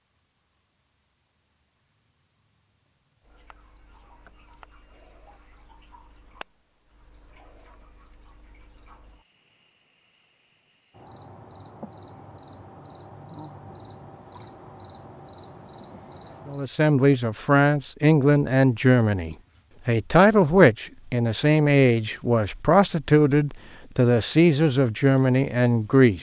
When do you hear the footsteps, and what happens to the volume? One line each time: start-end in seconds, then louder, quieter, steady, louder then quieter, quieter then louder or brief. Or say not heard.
not heard.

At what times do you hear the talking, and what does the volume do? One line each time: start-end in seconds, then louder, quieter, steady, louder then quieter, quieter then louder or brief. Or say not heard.
16.4-26.1 steady.